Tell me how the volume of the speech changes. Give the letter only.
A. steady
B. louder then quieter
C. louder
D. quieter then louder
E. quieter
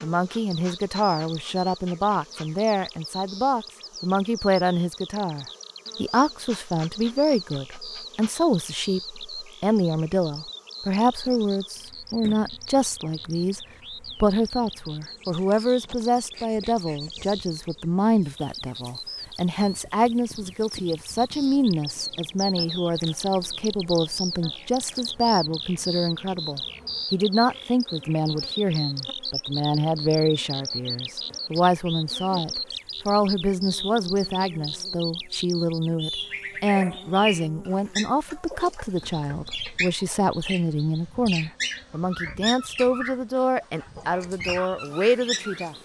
A.